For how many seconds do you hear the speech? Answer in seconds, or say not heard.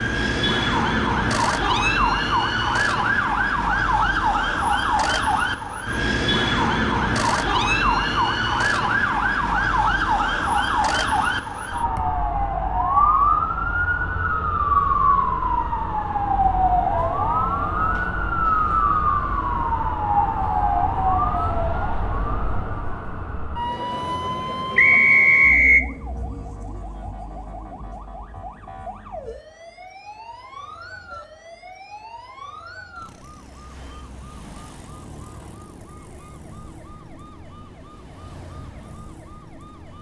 not heard.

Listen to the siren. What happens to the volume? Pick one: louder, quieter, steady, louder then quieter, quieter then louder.
quieter.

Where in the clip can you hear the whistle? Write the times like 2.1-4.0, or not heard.
24.8-25.9.